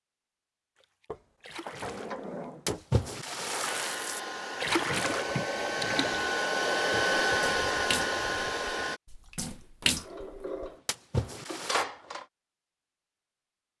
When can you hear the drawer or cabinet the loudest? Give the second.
12 s.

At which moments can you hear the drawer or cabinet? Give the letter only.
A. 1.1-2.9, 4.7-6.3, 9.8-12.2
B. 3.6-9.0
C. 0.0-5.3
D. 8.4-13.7
A.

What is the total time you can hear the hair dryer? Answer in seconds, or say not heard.
5 s.